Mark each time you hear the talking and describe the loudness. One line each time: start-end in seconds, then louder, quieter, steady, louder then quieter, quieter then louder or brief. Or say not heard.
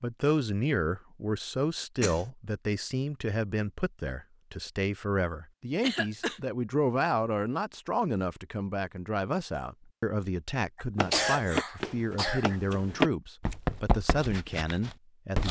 0.0-15.4 steady.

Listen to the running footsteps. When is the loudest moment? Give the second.
13 s.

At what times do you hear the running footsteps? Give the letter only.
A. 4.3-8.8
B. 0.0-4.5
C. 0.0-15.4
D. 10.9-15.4
D.